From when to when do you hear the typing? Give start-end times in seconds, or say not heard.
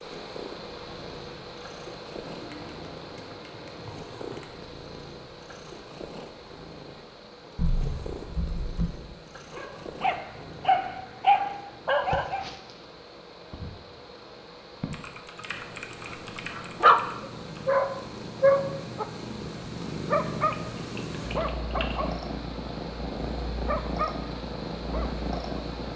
2.2-4.5, 7.5-8.9, 14.9-17.6, 20.5-21.9.